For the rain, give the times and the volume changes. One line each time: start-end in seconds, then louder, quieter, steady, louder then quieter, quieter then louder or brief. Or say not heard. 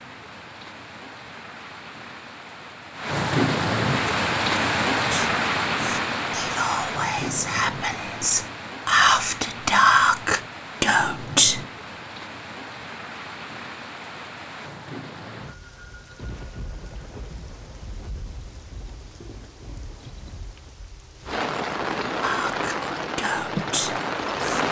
0.0-24.6 quieter then louder.